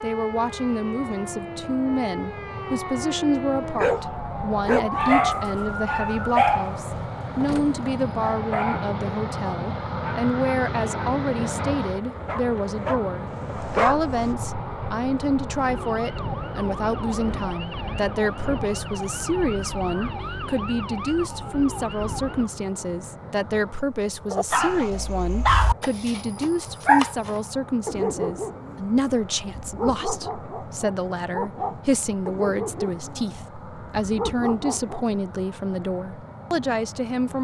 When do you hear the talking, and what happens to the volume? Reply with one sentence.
You can hear the talking from 0.0 to 37.3 s, at a steady volume.